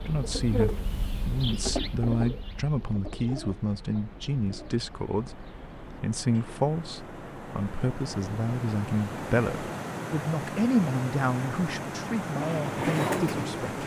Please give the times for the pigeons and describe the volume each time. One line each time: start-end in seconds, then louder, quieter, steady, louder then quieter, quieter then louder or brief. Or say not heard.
0.0-6.6 quieter
12.3-13.8 brief.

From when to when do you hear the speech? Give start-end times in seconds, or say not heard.
0.0-13.8.